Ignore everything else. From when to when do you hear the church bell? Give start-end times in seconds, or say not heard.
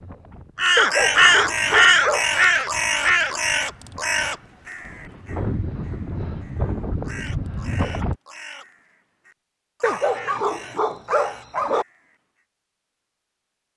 not heard.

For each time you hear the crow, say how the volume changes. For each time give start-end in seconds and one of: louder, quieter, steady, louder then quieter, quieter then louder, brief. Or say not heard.
0.6-12.2 quieter.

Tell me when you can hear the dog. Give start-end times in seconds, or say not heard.
0.8-2.3, 9.8-11.8.